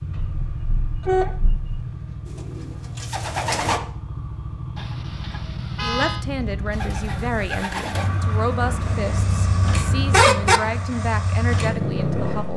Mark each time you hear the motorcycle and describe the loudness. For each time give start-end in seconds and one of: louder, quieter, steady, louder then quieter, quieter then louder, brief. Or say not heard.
0.0-12.5 louder.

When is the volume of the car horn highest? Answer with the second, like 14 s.
10 s.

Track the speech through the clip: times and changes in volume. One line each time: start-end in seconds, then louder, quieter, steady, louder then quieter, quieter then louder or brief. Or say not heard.
5.8-12.5 steady.